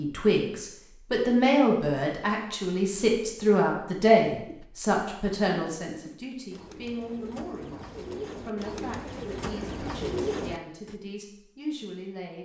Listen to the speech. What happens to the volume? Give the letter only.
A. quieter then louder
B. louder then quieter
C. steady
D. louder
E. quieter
E.